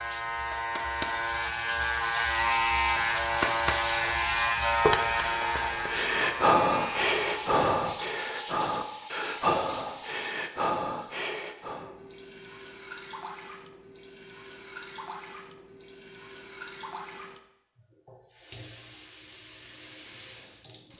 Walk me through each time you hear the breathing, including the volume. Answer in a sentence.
The breathing can be heard from 5.6 to 11.9 s, getting quieter.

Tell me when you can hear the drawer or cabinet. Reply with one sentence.
You can hear the drawer or cabinet from 4.8 to 5.5 s.